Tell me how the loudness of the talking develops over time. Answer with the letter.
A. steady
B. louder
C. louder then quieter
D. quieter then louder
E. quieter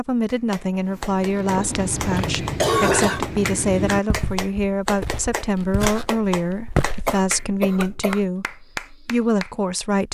A.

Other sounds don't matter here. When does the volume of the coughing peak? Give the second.
3 s.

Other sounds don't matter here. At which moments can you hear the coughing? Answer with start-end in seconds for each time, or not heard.
1.6-3.2, 7.0-8.2.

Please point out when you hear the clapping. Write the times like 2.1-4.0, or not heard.
0.3-9.6.